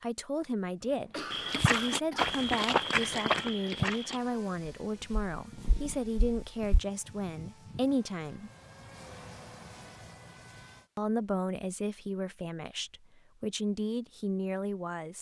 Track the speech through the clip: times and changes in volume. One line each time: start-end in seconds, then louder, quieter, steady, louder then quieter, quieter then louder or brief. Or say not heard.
0.0-8.5 steady
10.9-15.1 quieter then louder.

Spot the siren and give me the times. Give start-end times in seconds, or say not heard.
not heard.